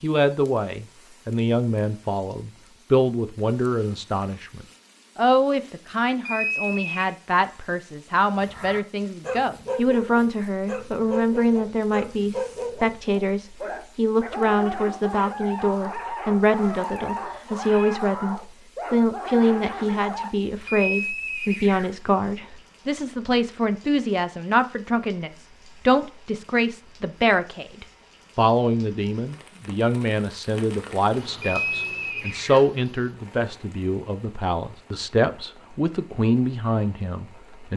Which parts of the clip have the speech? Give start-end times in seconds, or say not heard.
0.0-37.7.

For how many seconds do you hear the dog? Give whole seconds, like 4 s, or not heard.
12 s.